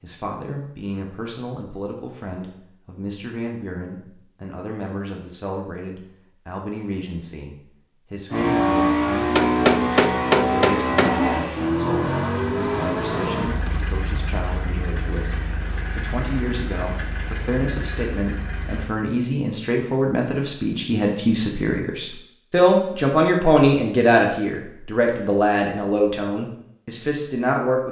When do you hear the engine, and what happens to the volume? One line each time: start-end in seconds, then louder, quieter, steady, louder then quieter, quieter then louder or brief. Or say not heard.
8.3-18.9 quieter.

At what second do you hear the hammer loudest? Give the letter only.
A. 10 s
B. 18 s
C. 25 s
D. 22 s
A.